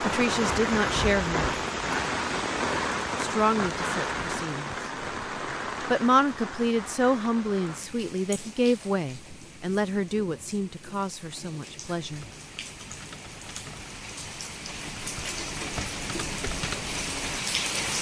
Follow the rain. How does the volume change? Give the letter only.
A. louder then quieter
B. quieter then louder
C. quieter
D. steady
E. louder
B.